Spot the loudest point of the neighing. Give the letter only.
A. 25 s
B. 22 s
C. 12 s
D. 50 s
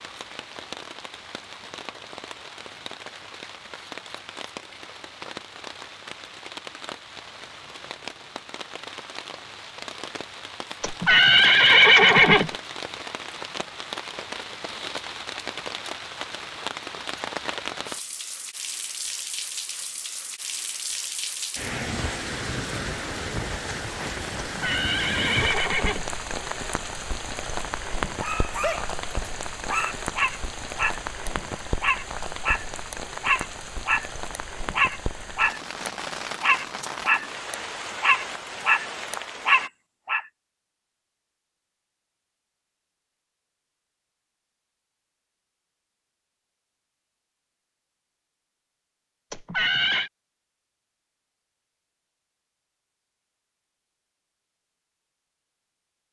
C.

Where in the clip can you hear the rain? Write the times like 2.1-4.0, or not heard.
0.0-39.7.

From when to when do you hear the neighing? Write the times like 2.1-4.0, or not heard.
10.8-12.5, 24.4-26.1, 49.3-50.1.